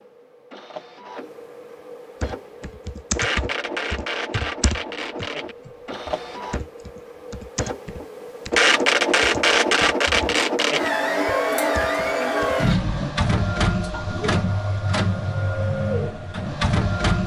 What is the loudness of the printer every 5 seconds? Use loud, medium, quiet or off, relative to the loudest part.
medium, loud, loud, loud.